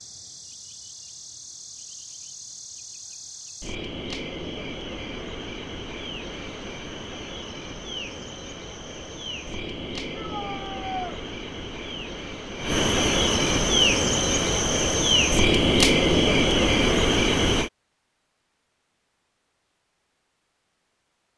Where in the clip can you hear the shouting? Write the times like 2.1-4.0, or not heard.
10.1-11.2.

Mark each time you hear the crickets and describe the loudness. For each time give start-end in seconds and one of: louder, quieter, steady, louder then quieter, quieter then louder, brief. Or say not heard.
0.0-17.7 louder.